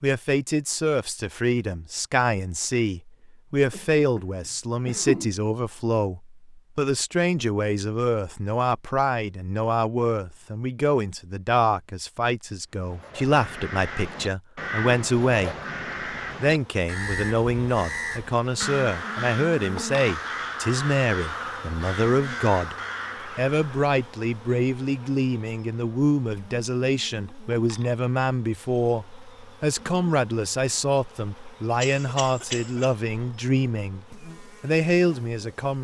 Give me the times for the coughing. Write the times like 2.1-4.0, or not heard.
3.7-4.2, 4.8-5.2, 31.8-32.9.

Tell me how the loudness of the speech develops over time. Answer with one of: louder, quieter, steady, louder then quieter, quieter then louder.
steady.